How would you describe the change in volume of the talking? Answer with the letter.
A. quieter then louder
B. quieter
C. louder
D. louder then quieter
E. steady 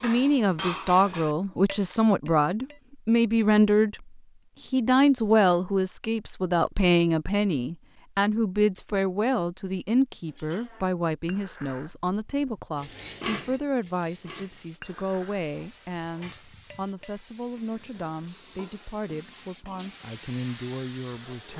B.